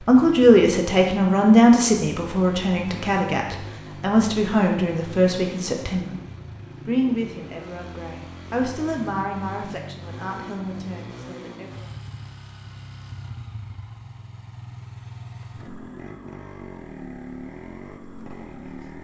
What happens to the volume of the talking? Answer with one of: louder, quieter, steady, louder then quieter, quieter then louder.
quieter.